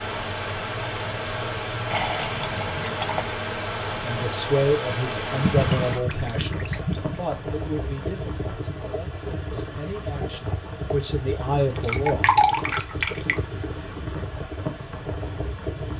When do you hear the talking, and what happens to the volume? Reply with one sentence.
You can hear the talking from 4.0 to 12.3 s, getting quieter then louder.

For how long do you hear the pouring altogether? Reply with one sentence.
You can hear the pouring for 5 seconds altogether.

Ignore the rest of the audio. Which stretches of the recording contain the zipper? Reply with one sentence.
You can't hear the zipper here.